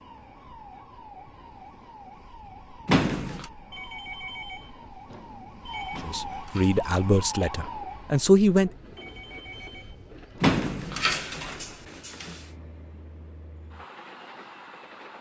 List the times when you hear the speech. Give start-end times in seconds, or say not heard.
6.0-8.7.